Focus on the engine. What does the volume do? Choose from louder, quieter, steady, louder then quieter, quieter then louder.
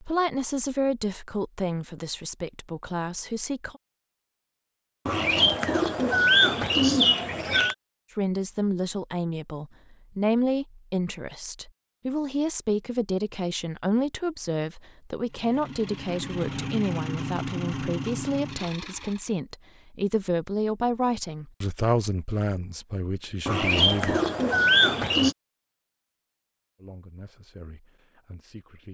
louder then quieter.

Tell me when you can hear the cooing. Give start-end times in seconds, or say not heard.
5.0-7.8, 23.4-25.4.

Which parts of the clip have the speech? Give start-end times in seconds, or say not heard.
0.0-3.8, 8.2-24.2, 26.8-28.9.